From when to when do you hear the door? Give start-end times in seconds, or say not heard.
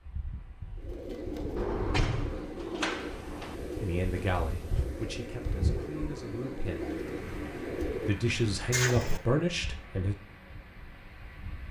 1.6-3.5, 8.7-9.2.